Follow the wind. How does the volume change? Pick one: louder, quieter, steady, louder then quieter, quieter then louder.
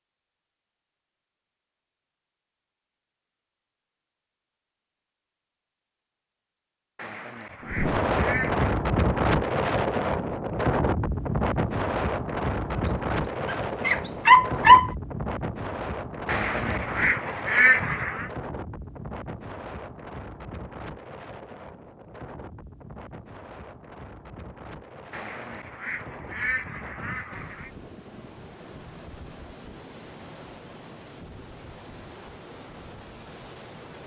quieter.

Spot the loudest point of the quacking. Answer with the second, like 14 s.
18 s.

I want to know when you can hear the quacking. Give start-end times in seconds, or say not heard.
7.0-8.7, 16.2-18.3, 25.1-27.7.